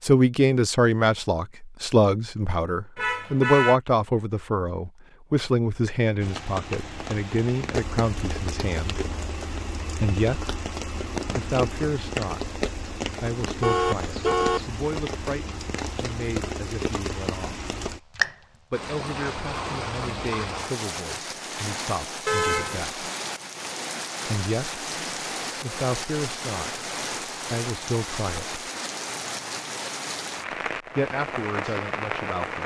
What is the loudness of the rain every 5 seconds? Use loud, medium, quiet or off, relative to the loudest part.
off, loud, loud, loud, loud, loud, loud.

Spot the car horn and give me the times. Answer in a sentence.
The car horn can be heard from 3.0 to 3.8 s, from 13.6 to 14.7 s and from 22.2 to 22.9 s.